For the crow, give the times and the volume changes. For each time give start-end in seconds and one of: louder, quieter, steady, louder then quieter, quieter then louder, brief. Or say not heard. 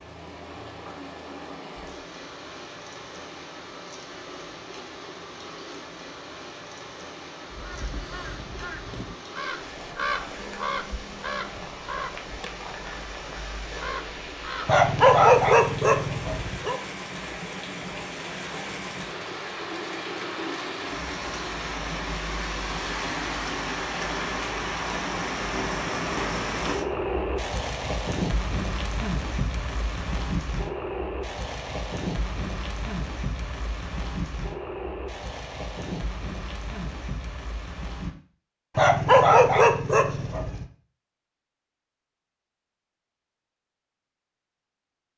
7.5-14.8 louder then quieter.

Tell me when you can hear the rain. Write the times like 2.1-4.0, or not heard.
0.0-38.1.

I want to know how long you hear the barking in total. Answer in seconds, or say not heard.
4 s.